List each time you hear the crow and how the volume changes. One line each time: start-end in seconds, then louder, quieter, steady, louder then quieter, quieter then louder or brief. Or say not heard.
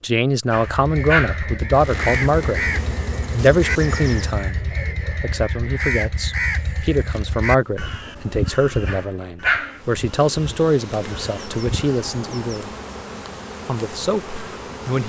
0.6-11.9 quieter.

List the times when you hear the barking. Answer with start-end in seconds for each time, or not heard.
0.5-1.4, 8.8-9.8.